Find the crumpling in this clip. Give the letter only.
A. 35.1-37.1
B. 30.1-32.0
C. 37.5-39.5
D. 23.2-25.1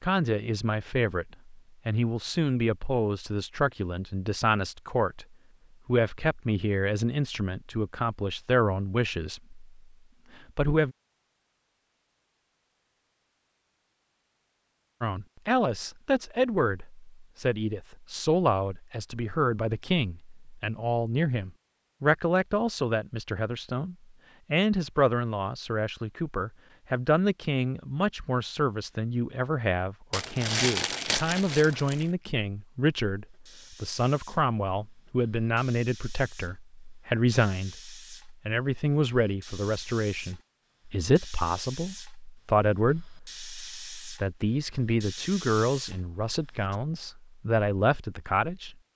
B.